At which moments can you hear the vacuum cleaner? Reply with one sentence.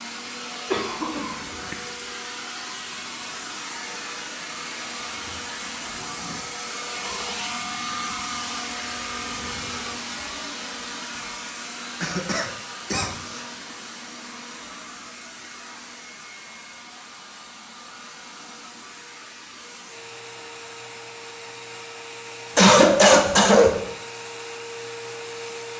The vacuum cleaner can be heard from 0.0 to 25.7 s.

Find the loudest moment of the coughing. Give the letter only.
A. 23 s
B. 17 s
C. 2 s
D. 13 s
A.